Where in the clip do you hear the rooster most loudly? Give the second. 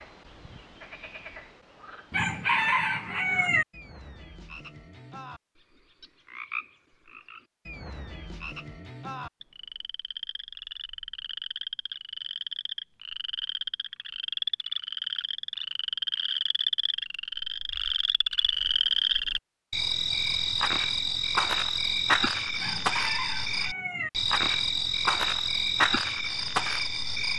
3 s.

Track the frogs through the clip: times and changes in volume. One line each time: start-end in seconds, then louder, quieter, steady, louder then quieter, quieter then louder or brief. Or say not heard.
0.0-27.3 louder.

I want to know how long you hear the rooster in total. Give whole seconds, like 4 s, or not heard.
3 s.